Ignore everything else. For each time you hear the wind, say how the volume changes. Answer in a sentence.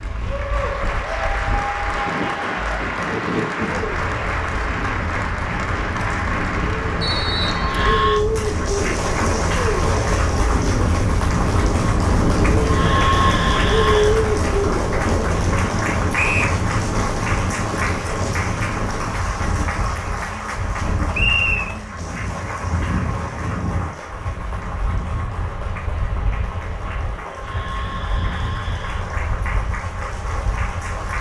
You can hear the wind from 0.0 to 31.1 s, getting louder then quieter.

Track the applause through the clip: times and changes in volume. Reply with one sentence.
The applause can be heard from 0.0 to 31.1 s, getting quieter.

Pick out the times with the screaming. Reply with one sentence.
You can hear the screaming from 7.5 to 8.2 s, from 12.6 to 14.2 s and from 27.3 to 29.1 s.